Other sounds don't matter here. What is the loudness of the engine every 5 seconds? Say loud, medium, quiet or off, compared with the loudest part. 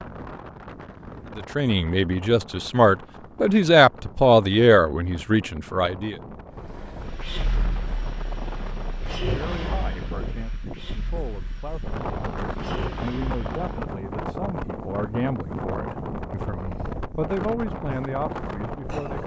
off, loud, medium, off.